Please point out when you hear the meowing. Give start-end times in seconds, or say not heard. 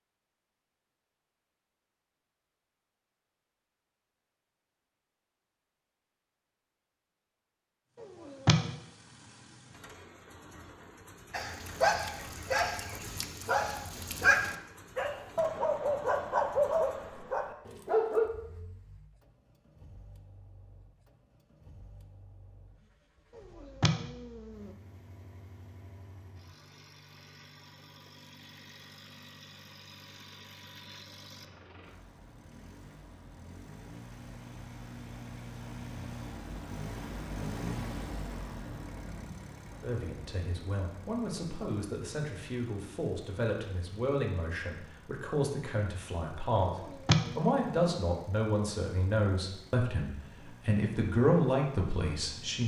8.0-8.7, 23.4-24.7, 46.6-48.0.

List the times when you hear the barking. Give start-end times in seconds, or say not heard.
11.3-18.3.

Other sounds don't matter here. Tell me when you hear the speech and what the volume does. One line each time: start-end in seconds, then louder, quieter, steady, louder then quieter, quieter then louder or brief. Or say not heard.
39.8-52.6 louder.